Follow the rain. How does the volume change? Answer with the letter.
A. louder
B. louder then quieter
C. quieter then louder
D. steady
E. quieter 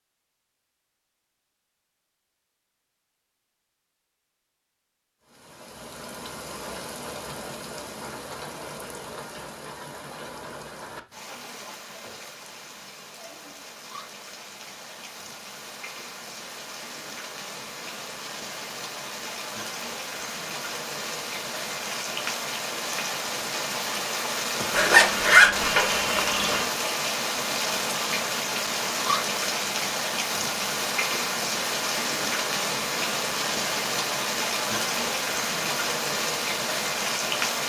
A.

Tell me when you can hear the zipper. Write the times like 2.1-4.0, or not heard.
24.7-26.1.